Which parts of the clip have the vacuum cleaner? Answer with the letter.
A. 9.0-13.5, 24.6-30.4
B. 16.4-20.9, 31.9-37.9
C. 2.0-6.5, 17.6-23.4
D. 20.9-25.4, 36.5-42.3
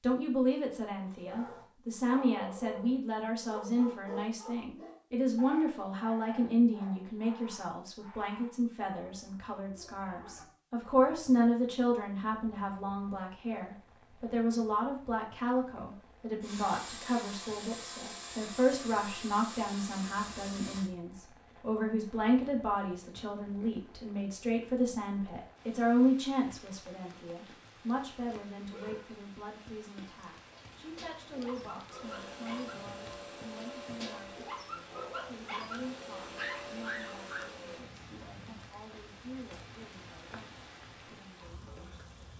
B.